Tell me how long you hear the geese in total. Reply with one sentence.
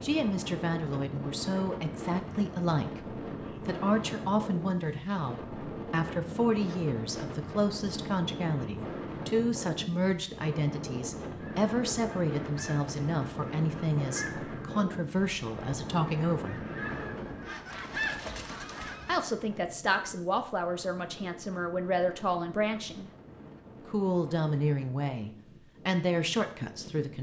You can hear the geese for 8 seconds altogether.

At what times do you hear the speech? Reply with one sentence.
You can hear the speech from 0.0 to 16.6 s, from 19.1 to 23.1 s and from 23.9 to 27.1 s.